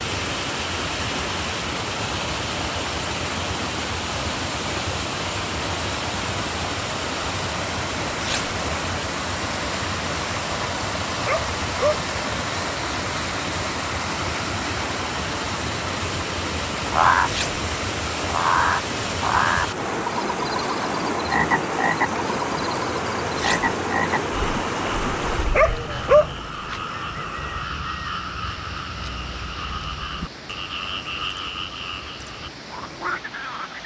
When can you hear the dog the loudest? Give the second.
26 s.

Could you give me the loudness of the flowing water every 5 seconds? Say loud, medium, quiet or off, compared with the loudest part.
loud, loud, loud, loud, loud, medium, quiet.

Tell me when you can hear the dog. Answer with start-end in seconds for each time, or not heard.
11.2-12.1, 25.5-26.4.